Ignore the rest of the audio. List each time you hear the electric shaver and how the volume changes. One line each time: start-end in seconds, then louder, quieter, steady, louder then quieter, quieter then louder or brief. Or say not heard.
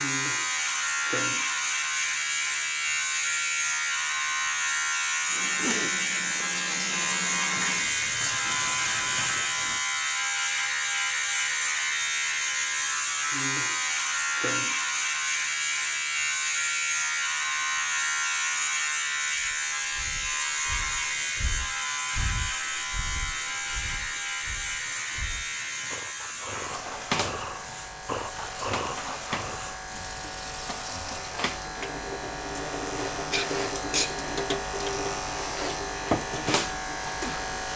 0.0-37.7 quieter.